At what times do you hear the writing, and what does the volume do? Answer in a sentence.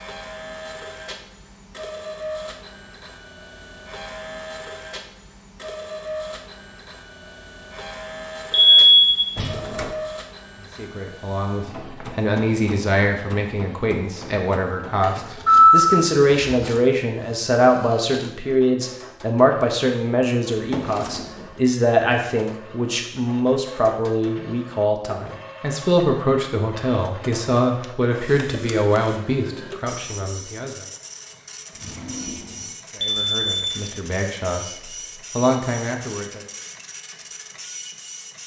The writing can't be heard in this clip.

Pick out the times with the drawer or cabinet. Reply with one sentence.
The drawer or cabinet can be heard from 9.3 to 9.9 s, from 20.5 to 21.6 s and from 31.7 to 32.8 s.